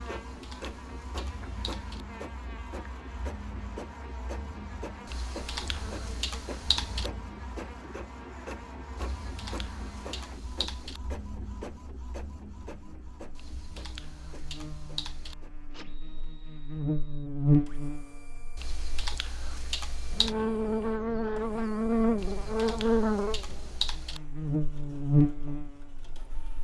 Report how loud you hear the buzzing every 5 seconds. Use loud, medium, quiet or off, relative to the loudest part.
quiet, quiet, quiet, loud, loud, loud.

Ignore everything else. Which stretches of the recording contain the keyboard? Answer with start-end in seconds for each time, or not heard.
0.1-2.0, 5.0-7.1, 8.9-11.0, 13.3-15.3, 18.6-20.4, 22.1-24.2.